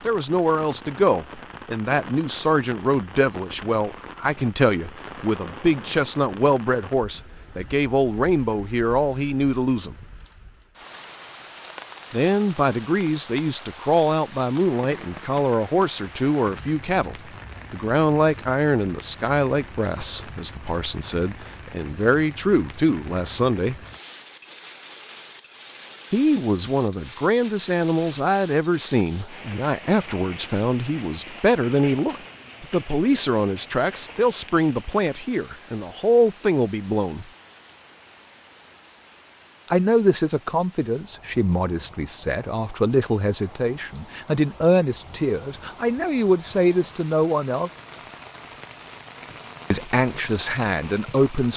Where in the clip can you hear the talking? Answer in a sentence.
The talking can be heard from 0.0 to 9.9 s, from 12.1 to 23.8 s, from 26.1 to 37.2 s, from 39.7 to 47.7 s and from 49.7 to 51.5 s.